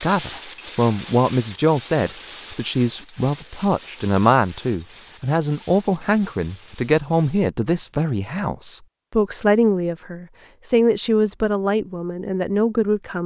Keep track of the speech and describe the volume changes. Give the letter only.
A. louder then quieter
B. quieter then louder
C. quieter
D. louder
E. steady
E.